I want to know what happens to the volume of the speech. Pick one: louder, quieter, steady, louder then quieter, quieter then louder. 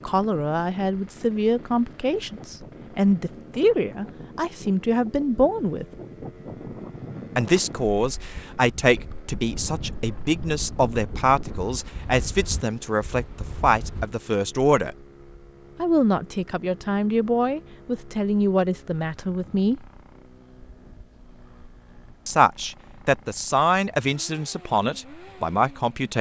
steady.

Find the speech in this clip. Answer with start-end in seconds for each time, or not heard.
0.1-5.8, 7.3-14.9, 15.8-19.9, 22.2-26.1.